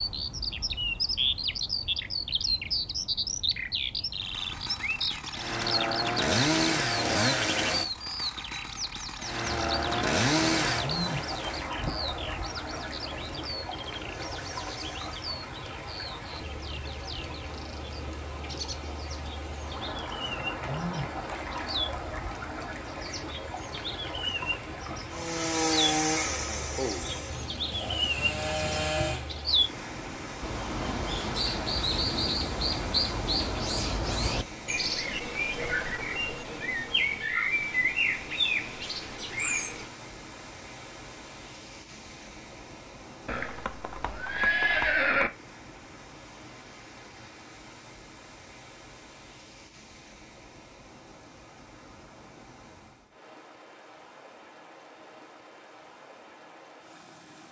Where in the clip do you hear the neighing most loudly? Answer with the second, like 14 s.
45 s.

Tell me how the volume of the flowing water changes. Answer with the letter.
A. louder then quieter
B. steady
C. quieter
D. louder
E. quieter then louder
C.